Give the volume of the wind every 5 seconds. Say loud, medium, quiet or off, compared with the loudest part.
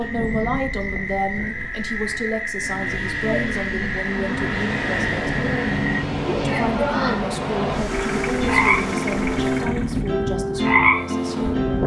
medium, loud, loud.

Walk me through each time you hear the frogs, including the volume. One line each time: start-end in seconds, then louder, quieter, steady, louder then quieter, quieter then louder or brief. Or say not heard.
0.0-11.8 louder.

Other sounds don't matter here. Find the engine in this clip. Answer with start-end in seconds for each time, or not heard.
2.6-10.2.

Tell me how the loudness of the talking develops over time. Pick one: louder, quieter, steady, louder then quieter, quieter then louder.
quieter.